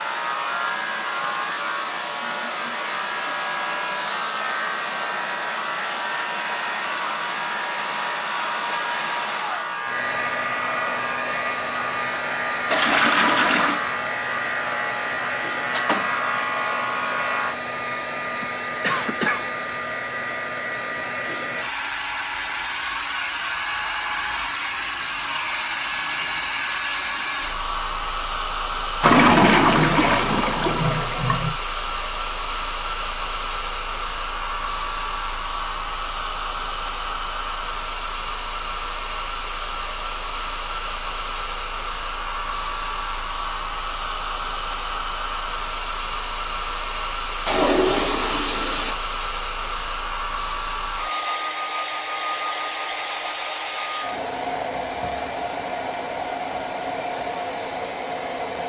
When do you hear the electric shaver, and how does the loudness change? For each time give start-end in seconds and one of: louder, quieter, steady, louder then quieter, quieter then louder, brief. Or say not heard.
0.0-17.6 steady.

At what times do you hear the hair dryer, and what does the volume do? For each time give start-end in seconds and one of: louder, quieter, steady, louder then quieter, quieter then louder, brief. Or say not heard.
0.0-58.6 steady.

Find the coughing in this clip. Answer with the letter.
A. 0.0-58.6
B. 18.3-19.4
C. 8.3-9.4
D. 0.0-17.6
B.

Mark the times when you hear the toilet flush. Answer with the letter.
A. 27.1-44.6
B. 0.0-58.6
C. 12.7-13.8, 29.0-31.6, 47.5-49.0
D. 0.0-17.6
C.